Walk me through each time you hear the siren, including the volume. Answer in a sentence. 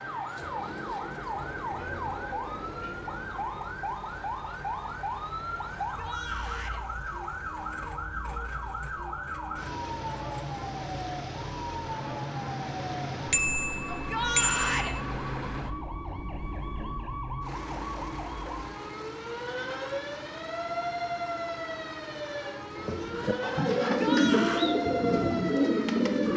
You can hear the siren from 0.0 to 26.3 s, at a steady volume.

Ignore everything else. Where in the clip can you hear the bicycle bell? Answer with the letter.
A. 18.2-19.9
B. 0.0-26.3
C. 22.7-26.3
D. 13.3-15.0
D.